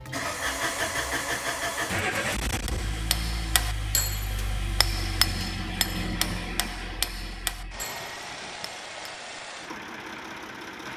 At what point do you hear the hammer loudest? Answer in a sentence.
The volume of the hammer peaks at 5 seconds.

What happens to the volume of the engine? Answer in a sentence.
The volume of the engine goes down.